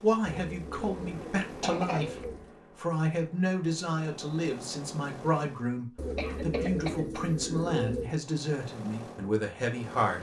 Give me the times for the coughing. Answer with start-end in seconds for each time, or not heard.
0.7-2.2, 6.2-7.2.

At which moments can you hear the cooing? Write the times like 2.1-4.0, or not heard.
0.2-2.6, 6.0-8.2.